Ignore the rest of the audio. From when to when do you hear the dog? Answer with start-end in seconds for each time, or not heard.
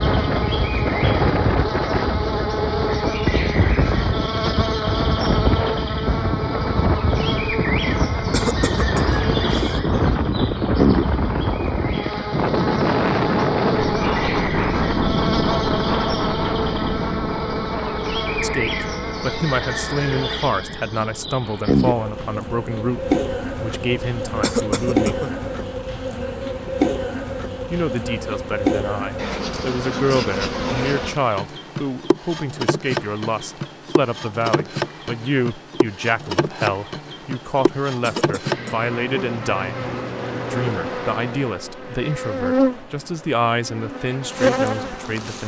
not heard.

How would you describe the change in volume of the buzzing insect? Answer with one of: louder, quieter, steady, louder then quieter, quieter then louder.
steady.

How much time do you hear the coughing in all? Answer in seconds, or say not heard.
3 s.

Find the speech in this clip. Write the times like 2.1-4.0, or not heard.
18.4-25.2, 27.7-39.9, 40.5-45.4.